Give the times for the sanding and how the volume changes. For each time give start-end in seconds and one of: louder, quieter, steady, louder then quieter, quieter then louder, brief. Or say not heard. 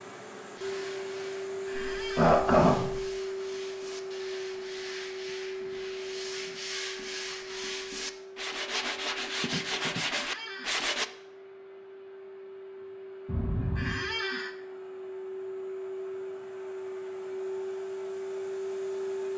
0.6-11.1 louder.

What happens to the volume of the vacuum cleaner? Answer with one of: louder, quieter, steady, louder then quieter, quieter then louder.
quieter then louder.